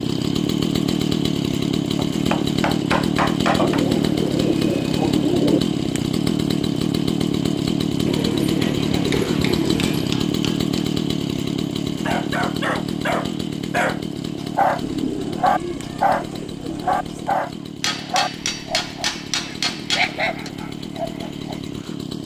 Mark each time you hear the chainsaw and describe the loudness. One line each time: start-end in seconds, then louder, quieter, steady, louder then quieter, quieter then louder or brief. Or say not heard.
0.0-22.2 quieter.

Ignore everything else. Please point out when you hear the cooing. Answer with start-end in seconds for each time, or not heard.
3.5-5.6, 8.1-10.2, 14.8-17.3.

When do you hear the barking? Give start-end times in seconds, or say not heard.
12.1-21.7.